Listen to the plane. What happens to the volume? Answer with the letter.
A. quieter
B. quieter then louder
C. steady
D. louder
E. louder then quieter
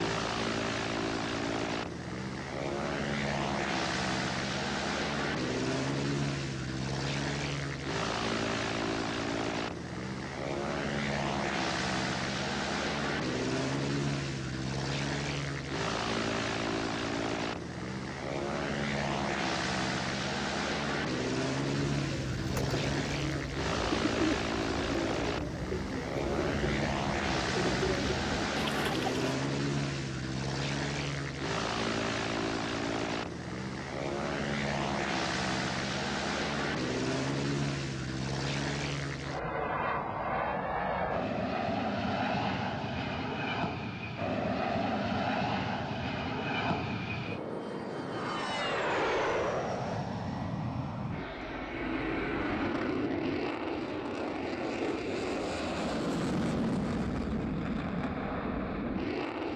C.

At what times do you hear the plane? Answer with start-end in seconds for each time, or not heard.
0.0-59.5.